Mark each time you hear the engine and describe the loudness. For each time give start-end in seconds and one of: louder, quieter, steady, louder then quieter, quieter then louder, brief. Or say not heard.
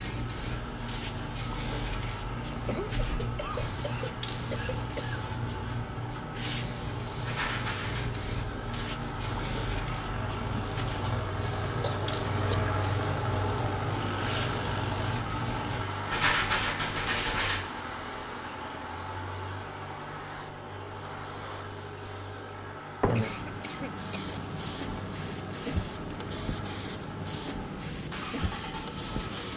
0.0-29.5 louder then quieter.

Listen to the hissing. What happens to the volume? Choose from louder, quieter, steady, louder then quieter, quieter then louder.
steady.